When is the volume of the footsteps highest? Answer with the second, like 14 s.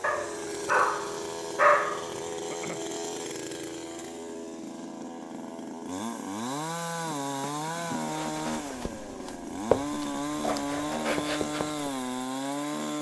10 s.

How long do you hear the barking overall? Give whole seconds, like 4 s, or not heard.
2 s.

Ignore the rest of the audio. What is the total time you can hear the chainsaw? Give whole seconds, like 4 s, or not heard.
13 s.